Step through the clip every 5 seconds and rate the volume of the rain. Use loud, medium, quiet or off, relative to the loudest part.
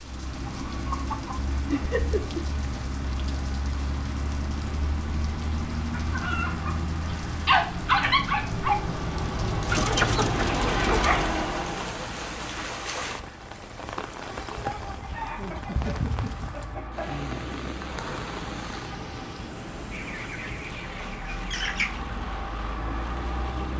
medium, medium, loud, loud, medium.